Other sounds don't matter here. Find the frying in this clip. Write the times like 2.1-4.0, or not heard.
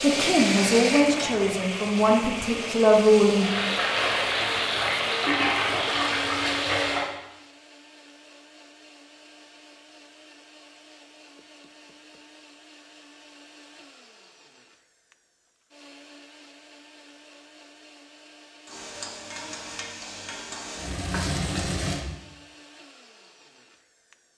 0.0-7.0, 18.6-22.1.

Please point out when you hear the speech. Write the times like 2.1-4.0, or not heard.
0.0-3.5.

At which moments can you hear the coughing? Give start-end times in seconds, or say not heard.
not heard.